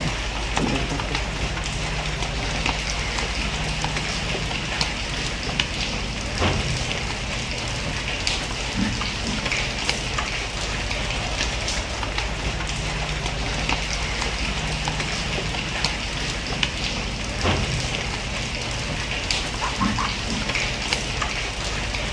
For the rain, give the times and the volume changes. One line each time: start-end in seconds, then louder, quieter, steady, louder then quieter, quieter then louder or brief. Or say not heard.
0.0-22.0 steady.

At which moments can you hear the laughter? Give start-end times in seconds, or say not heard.
0.5-1.4, 19.6-20.1.